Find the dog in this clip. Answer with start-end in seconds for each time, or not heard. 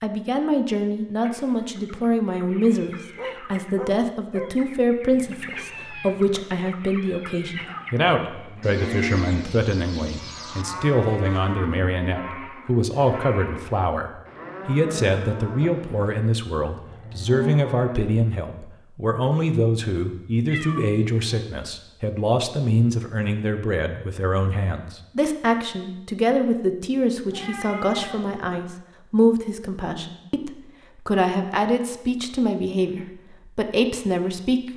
3.1-4.5.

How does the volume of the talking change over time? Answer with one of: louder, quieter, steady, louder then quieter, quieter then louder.
steady.